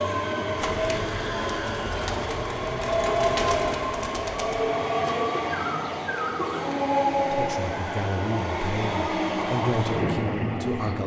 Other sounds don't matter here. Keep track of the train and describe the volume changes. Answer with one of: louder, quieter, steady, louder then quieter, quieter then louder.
steady.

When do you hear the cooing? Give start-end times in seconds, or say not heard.
0.6-6.8.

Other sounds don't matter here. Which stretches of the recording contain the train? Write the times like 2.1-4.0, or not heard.
0.0-11.0.